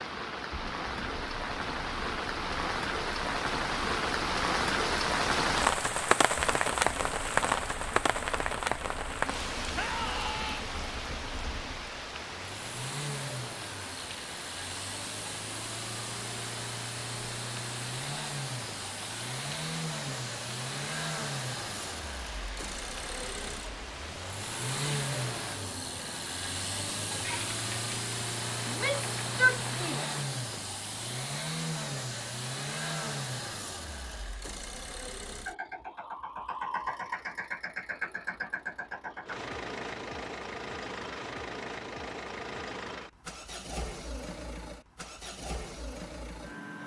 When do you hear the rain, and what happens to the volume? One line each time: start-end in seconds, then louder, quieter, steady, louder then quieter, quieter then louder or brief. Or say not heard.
0.0-30.2 quieter.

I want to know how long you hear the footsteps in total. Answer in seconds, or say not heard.
not heard.